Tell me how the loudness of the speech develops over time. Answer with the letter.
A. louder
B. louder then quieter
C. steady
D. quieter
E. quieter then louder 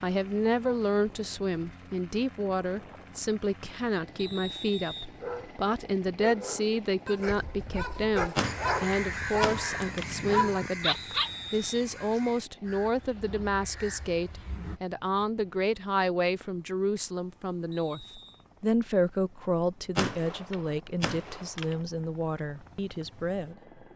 C.